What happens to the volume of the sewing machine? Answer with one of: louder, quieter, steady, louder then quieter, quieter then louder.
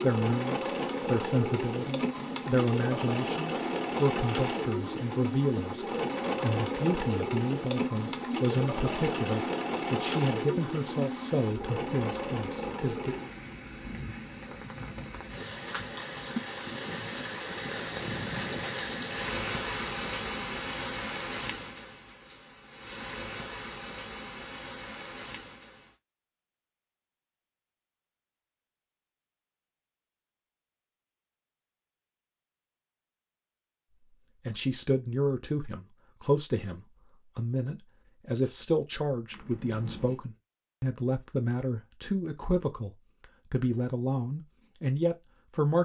steady.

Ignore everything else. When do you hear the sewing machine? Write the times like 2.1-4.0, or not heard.
0.0-13.3.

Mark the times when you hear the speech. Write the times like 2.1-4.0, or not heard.
0.0-13.2, 34.5-45.7.